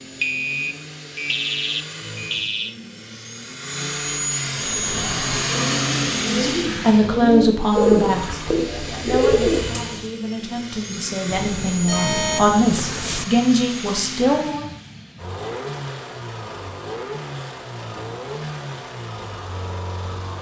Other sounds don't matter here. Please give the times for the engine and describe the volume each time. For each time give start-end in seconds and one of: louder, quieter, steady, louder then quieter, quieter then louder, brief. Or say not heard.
0.0-20.3 louder then quieter.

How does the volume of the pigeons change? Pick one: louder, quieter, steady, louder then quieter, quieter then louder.
louder.